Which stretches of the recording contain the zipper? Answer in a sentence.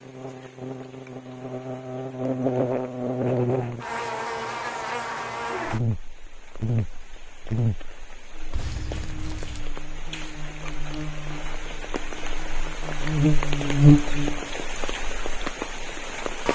You can hear the zipper from 8.5 to 9.7 s.